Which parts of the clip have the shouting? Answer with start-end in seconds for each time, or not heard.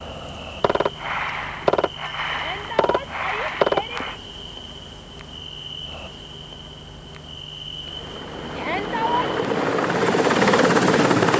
2.3-4.2, 8.6-9.3.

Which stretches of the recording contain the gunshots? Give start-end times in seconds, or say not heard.
0.6-4.2.